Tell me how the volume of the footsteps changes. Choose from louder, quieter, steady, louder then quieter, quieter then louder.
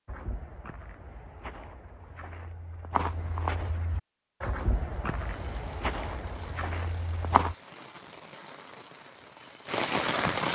louder.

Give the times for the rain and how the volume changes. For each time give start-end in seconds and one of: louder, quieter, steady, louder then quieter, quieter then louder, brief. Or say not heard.
5.0-10.5 louder.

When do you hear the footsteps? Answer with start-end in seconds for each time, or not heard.
0.1-7.5.